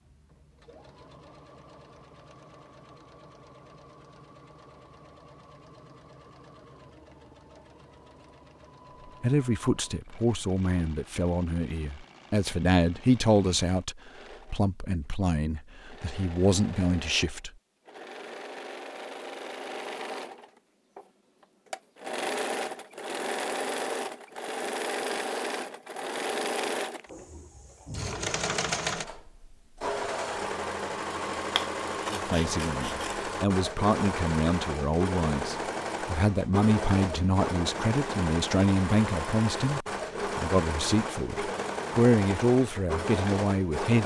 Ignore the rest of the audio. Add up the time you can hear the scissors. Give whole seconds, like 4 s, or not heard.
2 s.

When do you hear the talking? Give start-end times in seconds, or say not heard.
9.2-17.5, 32.1-44.0.